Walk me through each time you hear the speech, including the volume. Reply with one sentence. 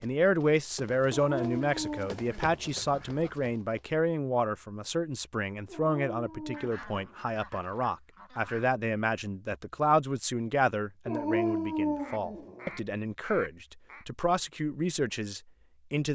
The speech can be heard from 0.0 to 16.0 s, at a steady volume.